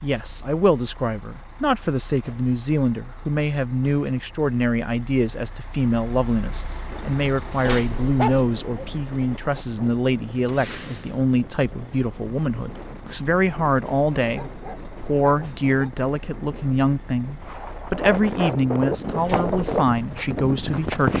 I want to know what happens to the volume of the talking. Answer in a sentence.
The loudness of the talking stays about the same.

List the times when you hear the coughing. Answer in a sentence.
You can't hear the coughing here.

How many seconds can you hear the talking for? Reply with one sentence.
You can hear the talking for 21 seconds altogether.